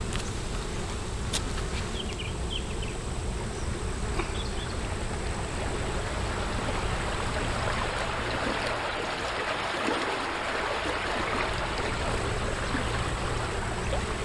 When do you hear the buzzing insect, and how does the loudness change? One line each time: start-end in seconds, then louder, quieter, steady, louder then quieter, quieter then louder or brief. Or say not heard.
0.0-14.1 quieter then louder.